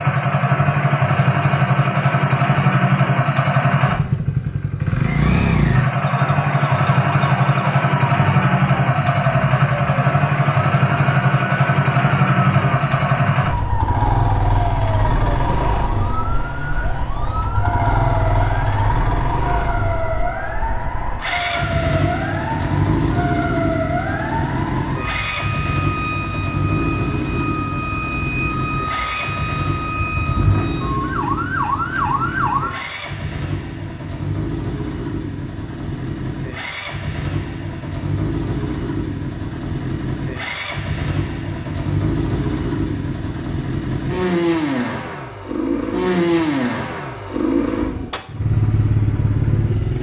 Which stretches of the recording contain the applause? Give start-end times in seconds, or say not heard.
not heard.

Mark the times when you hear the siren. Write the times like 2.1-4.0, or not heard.
6.0-32.9.